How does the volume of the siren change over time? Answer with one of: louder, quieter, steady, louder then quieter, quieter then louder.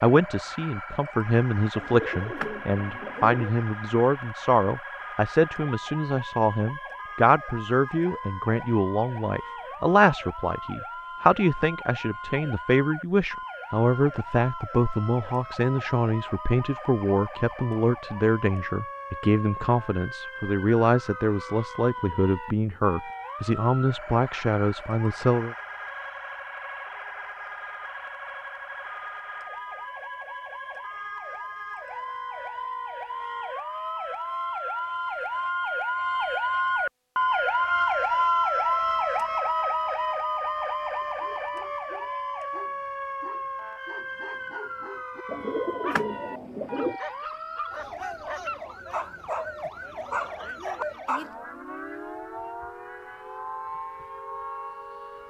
louder then quieter.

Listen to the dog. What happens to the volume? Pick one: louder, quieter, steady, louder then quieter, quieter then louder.
louder.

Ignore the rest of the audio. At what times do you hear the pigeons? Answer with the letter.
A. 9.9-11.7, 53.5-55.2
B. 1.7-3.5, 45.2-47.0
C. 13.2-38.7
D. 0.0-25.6
B.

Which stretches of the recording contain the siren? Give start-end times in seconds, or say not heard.
0.0-55.2.